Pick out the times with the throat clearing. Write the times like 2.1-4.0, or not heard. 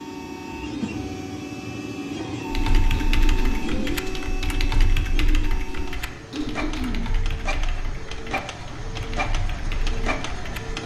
2.9-3.6, 6.3-7.0.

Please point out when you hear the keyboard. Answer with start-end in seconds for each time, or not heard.
2.5-10.8.